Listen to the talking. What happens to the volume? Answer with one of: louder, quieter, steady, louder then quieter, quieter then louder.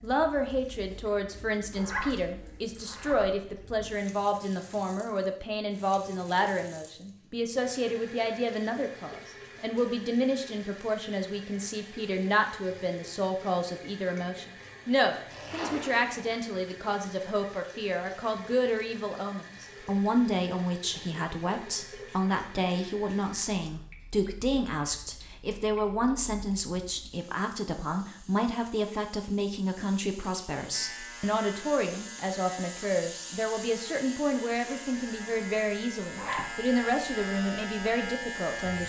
steady.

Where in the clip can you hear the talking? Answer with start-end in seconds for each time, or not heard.
0.0-38.8.